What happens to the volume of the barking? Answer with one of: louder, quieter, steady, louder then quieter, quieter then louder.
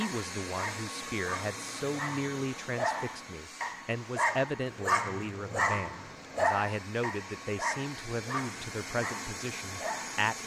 louder then quieter.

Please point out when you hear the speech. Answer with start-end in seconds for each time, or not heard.
0.0-10.4.